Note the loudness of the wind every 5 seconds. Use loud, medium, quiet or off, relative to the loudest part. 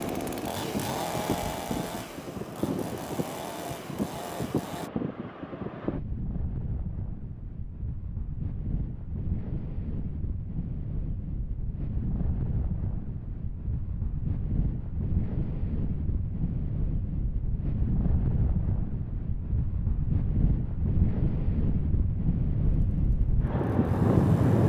medium, medium, medium, medium, loud.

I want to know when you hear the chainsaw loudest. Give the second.
1 s.